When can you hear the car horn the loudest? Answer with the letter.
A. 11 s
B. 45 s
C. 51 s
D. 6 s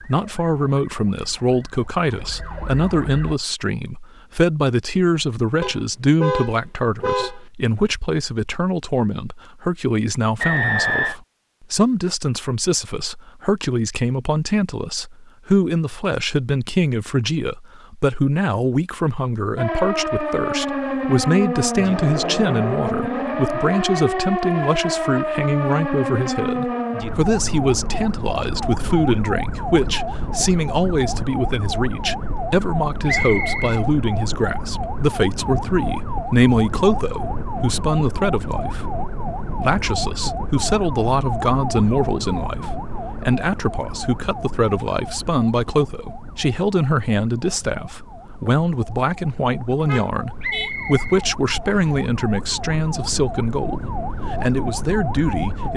D.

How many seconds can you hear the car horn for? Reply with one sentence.
The car horn can be heard for 3 seconds in total.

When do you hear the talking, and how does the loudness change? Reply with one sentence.
The talking can be heard from 0.0 to 55.7 s, at a steady volume.